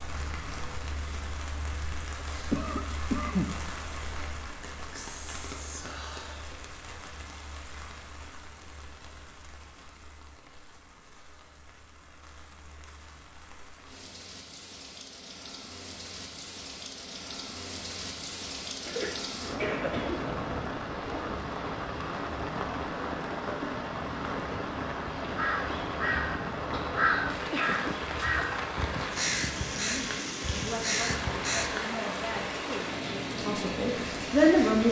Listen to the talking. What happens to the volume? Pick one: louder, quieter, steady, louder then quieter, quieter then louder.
louder.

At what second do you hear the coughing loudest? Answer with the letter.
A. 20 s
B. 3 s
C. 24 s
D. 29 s
B.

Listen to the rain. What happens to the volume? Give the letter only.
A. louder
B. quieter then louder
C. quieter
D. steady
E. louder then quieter
B.